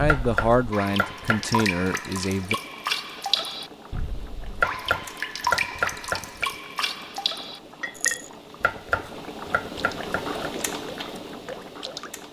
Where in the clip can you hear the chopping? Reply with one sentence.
You can hear the chopping from 0.1 to 1.6 s, from 4.5 to 6.5 s and from 8.6 to 10.4 s.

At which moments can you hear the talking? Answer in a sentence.
You can hear the talking from 0.0 to 2.5 s.